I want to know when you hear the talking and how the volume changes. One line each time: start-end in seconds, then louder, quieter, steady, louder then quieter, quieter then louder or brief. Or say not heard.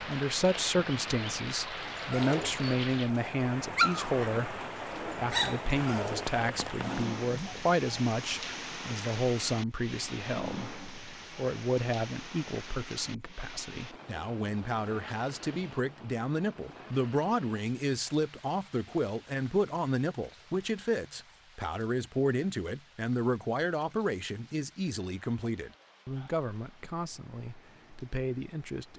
0.0-28.9 steady.